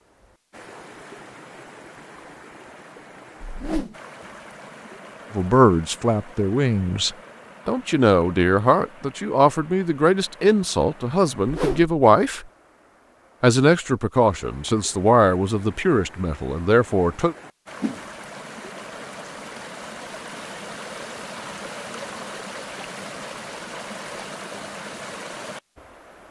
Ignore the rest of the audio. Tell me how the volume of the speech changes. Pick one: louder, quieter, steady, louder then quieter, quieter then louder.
steady.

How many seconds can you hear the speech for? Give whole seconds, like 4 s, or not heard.
11 s.